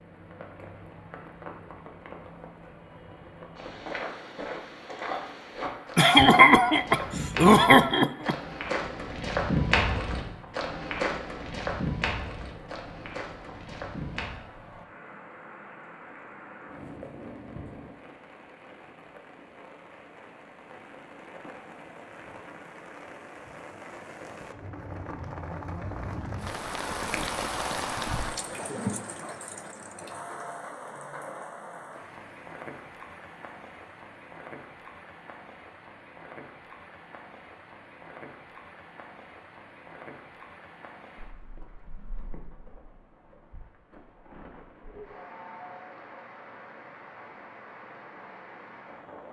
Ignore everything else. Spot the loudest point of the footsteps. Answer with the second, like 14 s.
10 s.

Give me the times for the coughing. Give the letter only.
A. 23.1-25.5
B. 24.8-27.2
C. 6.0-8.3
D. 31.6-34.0
C.